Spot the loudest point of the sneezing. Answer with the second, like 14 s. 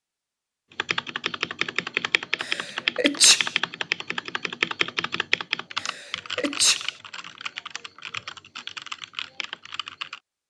3 s.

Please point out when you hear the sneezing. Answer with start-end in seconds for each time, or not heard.
2.4-3.5, 5.8-6.9.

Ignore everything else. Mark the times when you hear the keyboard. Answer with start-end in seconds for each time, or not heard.
0.8-10.2.